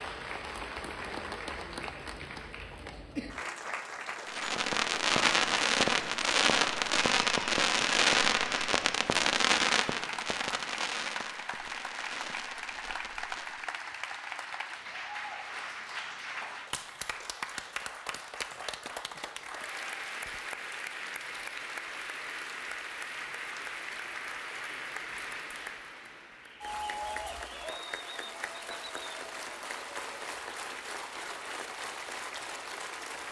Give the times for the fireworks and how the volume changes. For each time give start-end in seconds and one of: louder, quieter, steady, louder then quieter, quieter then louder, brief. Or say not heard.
4.2-13.7 quieter.